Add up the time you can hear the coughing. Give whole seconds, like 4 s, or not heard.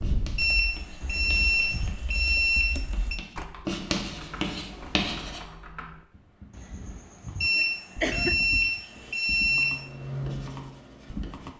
3 s.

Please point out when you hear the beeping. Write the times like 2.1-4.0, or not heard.
0.3-3.2, 7.4-9.8.